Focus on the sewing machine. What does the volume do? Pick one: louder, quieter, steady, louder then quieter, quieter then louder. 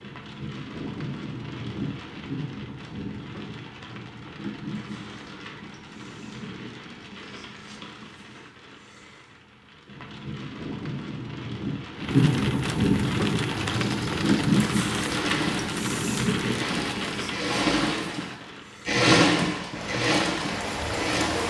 louder then quieter.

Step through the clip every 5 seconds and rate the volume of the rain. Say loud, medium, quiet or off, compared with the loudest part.
medium, quiet, loud, medium, medium.